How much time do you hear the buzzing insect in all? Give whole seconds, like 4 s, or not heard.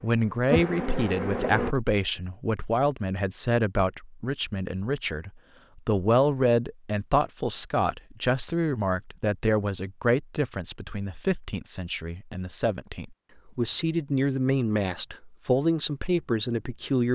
2 s.